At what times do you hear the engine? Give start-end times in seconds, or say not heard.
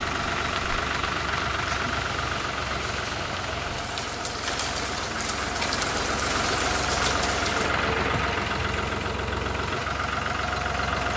0.0-11.1.